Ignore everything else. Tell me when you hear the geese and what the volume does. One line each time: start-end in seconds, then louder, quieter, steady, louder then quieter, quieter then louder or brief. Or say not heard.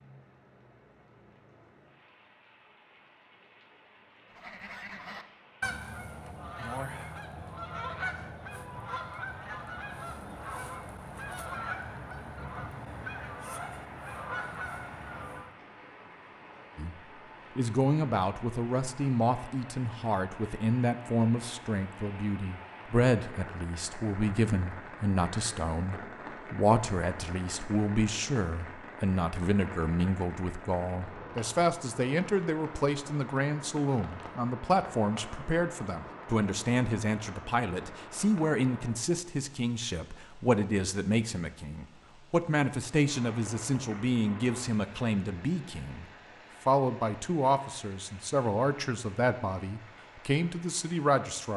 4.3-15.6 steady.